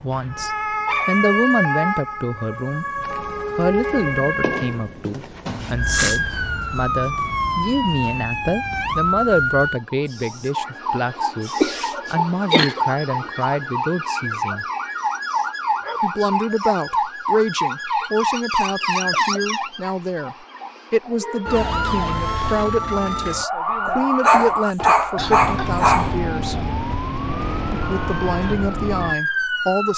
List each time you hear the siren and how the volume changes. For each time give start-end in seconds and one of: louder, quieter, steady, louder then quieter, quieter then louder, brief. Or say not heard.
0.0-29.9 steady.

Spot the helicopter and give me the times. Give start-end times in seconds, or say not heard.
not heard.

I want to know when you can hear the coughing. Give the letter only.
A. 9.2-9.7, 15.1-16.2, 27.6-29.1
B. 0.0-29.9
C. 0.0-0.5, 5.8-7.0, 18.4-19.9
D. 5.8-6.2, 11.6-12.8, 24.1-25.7
D.